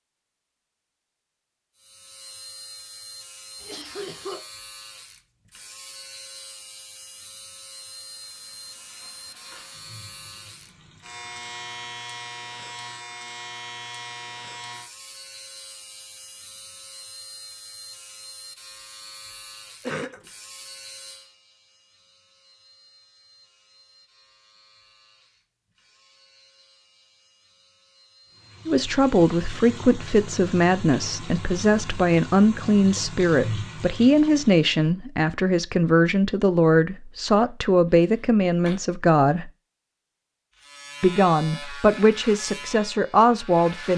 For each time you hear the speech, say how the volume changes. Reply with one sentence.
You can hear the speech from 28.6 to 39.5 s, at a steady volume; and briefly from 41.0 to 43.9 s.